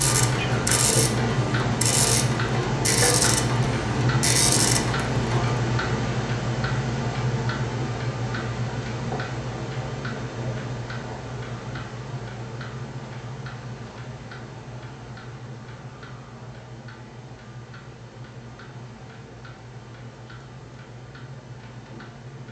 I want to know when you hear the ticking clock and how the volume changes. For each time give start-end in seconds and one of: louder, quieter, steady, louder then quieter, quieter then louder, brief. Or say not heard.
0.0-22.4 quieter.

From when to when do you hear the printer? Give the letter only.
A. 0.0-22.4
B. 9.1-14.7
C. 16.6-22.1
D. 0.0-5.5
D.